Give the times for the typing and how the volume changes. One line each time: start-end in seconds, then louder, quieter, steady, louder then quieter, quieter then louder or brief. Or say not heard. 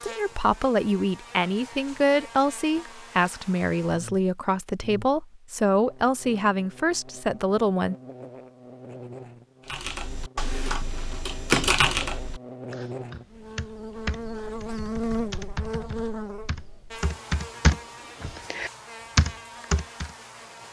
9.7-20.1 quieter then louder.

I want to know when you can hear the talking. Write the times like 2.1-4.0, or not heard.
0.0-8.0.